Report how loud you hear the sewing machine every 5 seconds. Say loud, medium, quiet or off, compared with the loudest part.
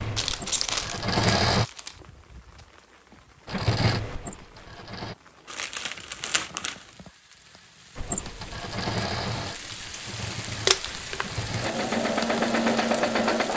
loud, medium, loud.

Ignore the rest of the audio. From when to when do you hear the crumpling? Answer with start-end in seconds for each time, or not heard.
0.1-1.9, 5.5-6.8, 10.7-11.2.